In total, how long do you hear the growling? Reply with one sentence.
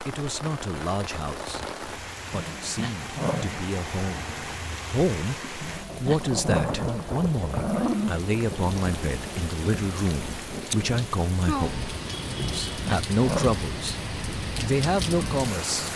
The growling can be heard for 5 seconds in total.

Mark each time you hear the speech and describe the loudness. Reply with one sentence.
You can hear the speech from 0.0 to 15.9 s, getting louder.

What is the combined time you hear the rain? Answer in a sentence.
You can hear the rain for 16 seconds altogether.